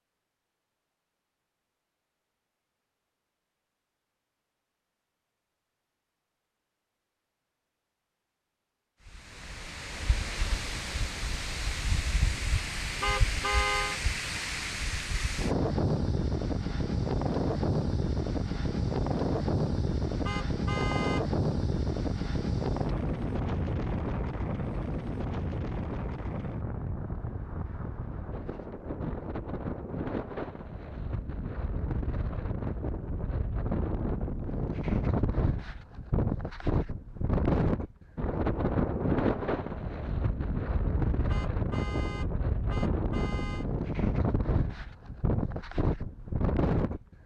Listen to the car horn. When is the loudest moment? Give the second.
14 s.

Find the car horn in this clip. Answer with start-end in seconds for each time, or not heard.
13.0-14.0, 20.2-21.2, 41.2-43.6.